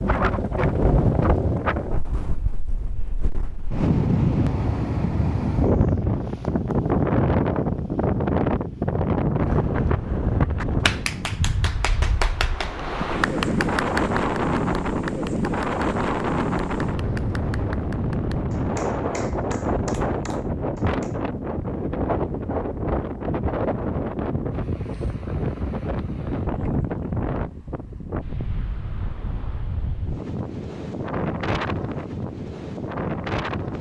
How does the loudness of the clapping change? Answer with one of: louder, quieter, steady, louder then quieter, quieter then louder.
quieter.